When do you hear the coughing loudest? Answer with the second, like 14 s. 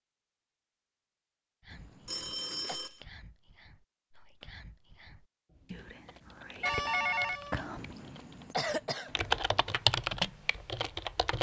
9 s.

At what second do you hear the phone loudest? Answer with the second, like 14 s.
7 s.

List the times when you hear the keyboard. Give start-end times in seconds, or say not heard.
5.5-11.3.